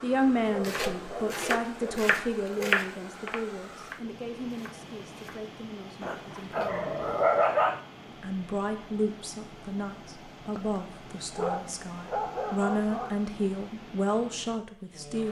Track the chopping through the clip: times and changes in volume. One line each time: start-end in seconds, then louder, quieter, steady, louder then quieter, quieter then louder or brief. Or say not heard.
0.5-5.5 louder then quieter.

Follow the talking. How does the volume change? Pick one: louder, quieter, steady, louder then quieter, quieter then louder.
quieter then louder.